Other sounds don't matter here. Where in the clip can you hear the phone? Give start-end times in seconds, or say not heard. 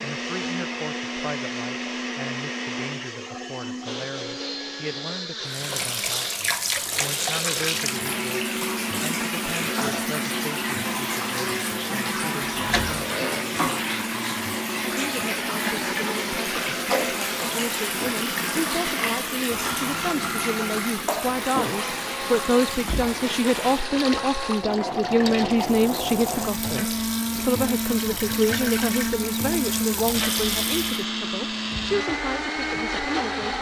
not heard.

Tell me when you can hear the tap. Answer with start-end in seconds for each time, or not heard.
5.5-31.1.